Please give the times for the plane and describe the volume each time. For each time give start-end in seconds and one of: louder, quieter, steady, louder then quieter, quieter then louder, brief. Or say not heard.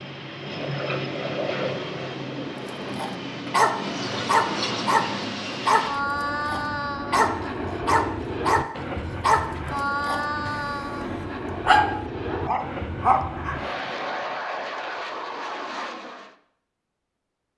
0.0-16.4 steady.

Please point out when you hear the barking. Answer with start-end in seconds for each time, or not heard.
2.6-13.6.